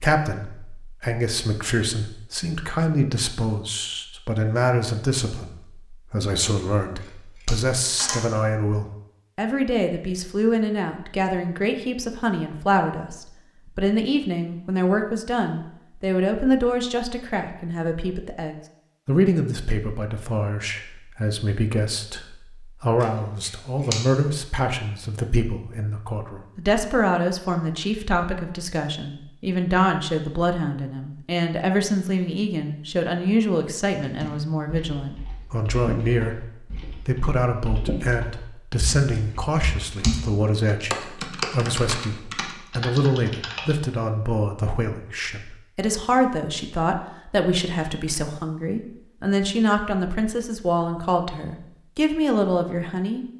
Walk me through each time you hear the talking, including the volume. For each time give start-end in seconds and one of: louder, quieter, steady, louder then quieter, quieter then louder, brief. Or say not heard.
0.0-53.2 steady.